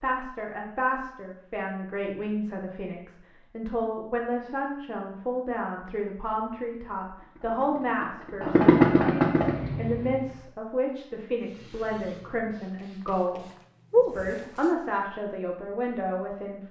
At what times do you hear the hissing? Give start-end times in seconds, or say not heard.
11.4-14.8.